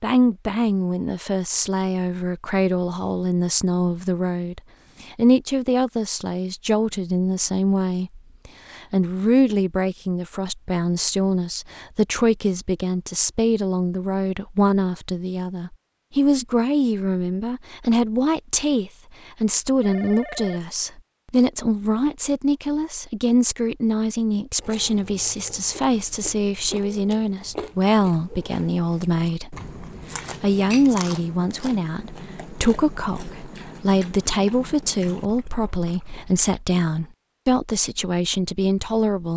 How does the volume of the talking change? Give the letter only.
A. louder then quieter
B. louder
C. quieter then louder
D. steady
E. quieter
D.